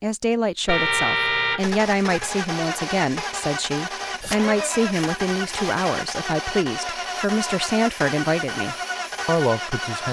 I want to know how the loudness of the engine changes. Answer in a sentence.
The volume of the engine stays about the same.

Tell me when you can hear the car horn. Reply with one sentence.
You can hear the car horn from 0.7 to 2.3 s.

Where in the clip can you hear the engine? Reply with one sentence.
You can hear the engine from 1.6 to 10.0 s.